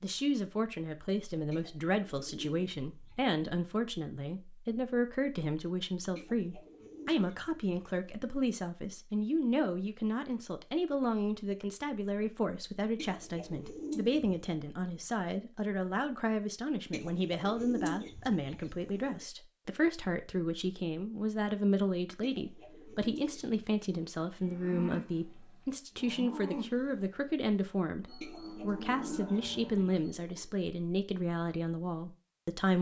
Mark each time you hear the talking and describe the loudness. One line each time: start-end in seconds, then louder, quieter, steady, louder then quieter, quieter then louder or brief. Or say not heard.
0.0-32.7 steady.